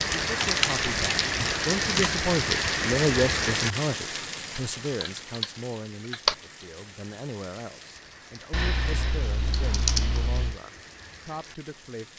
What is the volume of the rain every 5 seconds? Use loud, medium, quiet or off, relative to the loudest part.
loud, quiet, quiet.